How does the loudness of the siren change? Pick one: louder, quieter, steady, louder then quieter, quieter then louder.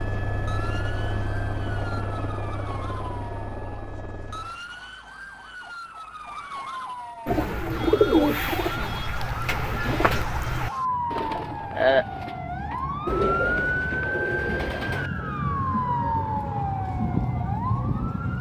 louder.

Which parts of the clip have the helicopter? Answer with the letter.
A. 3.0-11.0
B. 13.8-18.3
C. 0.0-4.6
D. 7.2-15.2
C.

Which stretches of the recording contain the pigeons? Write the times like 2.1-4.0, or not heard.
7.2-15.2.